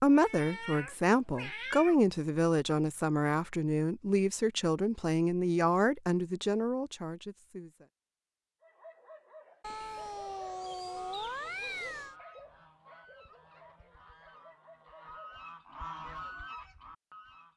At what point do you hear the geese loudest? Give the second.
16 s.